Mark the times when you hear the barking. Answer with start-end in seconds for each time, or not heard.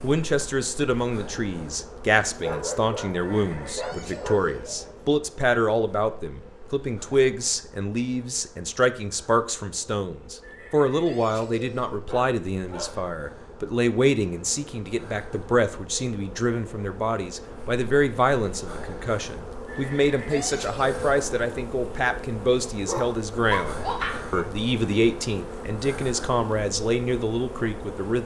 2.2-5.0, 12.1-13.0, 22.9-24.4.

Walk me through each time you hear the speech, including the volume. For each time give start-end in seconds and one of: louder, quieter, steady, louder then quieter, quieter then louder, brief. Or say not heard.
0.0-28.2 steady.